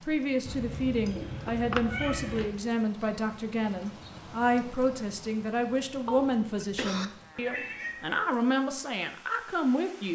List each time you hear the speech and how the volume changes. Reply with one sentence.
The speech can be heard from 0.0 to 10.1 s, at a steady volume.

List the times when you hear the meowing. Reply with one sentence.
The meowing can be heard from 0.5 to 2.5 s and from 7.3 to 8.2 s.